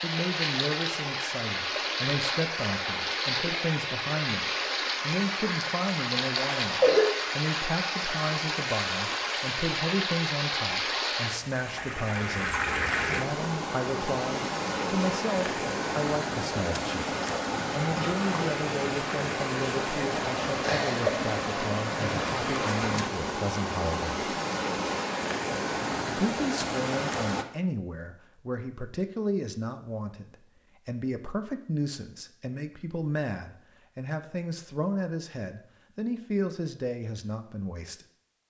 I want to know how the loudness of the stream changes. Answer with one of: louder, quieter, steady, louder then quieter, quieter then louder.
steady.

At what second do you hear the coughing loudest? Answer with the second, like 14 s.
7 s.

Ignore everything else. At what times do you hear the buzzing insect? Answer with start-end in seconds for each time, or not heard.
not heard.